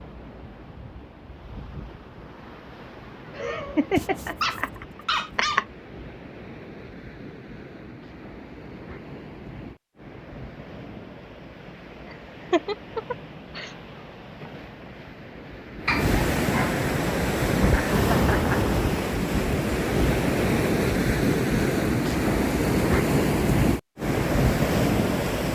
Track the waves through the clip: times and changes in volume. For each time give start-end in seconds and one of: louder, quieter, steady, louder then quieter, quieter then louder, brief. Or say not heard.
0.0-25.5 louder.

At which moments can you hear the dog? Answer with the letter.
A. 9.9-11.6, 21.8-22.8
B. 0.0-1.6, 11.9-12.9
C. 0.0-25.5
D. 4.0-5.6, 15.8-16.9
D.